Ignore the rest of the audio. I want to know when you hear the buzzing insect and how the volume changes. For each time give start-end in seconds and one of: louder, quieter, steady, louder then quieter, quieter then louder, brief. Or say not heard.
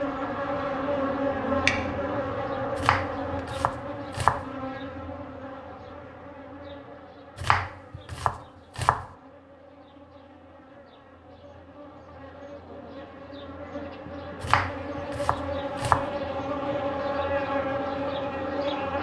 0.0-18.9 quieter then louder.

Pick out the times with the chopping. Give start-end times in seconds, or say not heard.
2.8-4.5, 7.3-9.1, 14.4-16.1.